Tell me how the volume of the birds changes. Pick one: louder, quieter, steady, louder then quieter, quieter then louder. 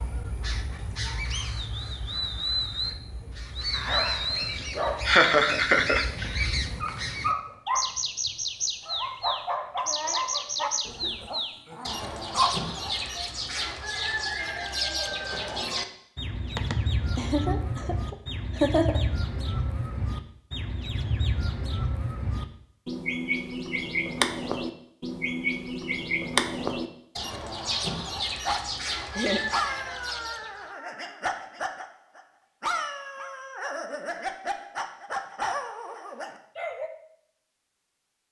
steady.